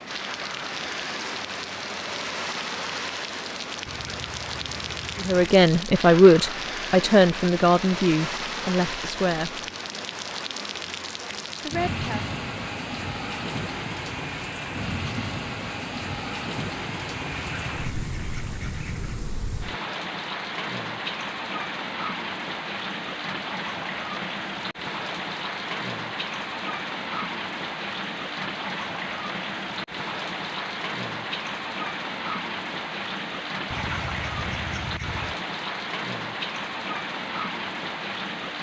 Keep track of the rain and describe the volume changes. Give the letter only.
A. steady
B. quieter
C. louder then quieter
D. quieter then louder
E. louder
A.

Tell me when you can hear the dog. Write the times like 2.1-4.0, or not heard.
not heard.